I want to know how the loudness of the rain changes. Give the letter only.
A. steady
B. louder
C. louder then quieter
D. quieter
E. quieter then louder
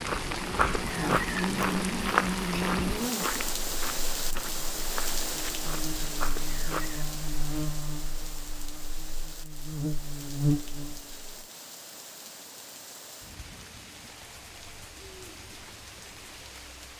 D.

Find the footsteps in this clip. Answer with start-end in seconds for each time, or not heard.
0.0-7.0.